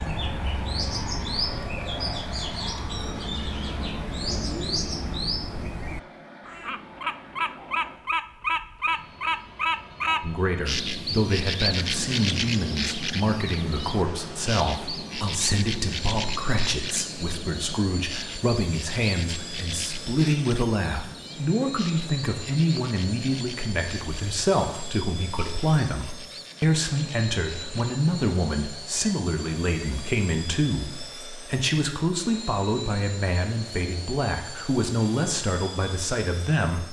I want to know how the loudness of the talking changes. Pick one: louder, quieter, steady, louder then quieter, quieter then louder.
steady.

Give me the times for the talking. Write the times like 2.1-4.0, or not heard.
10.2-36.8.